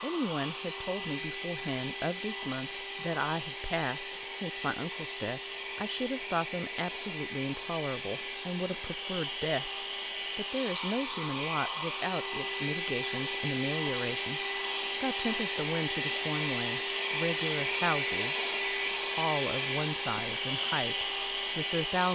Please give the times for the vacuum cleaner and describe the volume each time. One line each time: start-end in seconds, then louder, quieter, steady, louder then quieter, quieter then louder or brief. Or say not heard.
0.0-22.0 louder.